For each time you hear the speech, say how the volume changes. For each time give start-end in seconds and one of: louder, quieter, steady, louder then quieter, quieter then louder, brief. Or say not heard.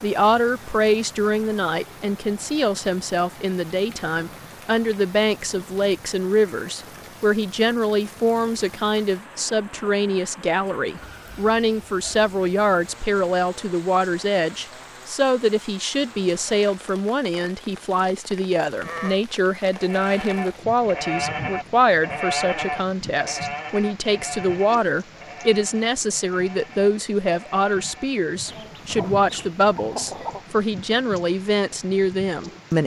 0.0-32.8 steady.